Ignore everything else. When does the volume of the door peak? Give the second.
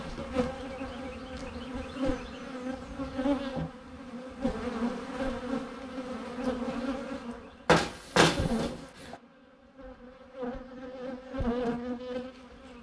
8 s.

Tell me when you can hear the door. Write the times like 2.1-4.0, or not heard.
2.8-3.7, 7.7-9.2.